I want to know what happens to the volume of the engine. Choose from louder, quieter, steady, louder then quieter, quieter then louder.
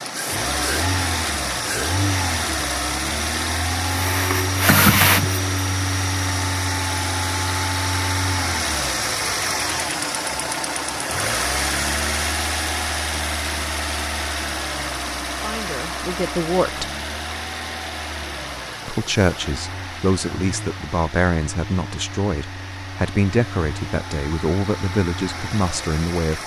quieter.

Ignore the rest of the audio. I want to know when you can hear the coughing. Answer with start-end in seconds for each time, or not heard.
3.8-5.5.